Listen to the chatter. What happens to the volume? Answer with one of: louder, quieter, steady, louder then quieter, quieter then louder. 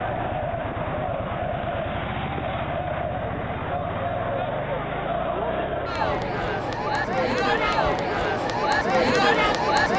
louder.